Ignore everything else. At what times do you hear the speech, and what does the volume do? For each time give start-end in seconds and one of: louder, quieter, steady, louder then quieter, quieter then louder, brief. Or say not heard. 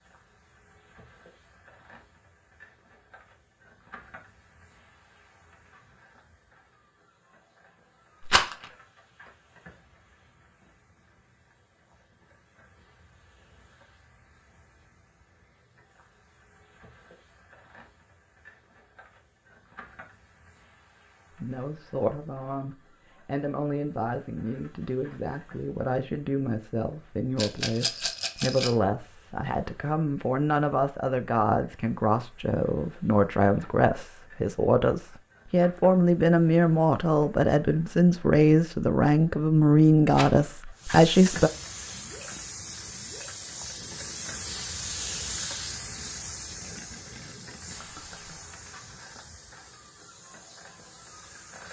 21.4-41.5 louder.